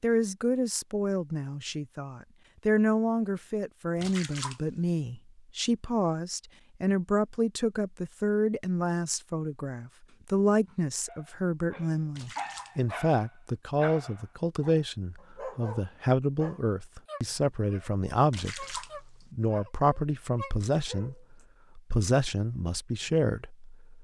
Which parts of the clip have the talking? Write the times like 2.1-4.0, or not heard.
0.0-23.9.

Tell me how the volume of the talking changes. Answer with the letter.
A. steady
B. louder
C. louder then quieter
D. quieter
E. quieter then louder
A.